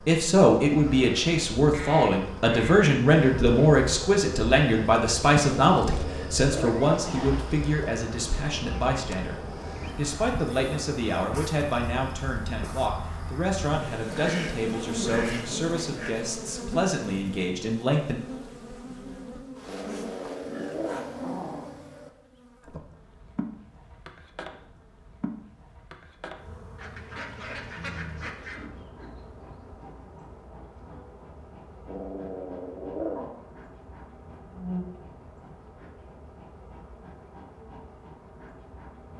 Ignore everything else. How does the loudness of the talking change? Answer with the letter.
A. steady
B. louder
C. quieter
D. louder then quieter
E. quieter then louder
C.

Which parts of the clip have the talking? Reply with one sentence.
You can hear the talking from 0.1 to 18.1 s.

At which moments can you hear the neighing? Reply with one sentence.
The neighing can't be heard in this clip.